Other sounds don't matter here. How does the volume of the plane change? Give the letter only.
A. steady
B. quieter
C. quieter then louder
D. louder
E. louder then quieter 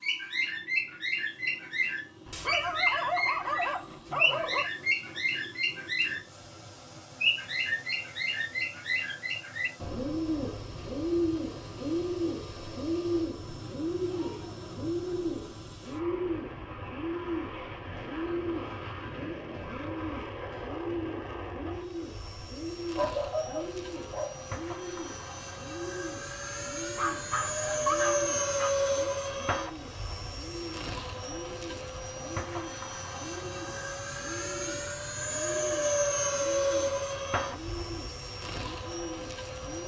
D.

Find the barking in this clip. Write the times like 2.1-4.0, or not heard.
2.2-4.7, 22.9-24.4, 26.9-28.7.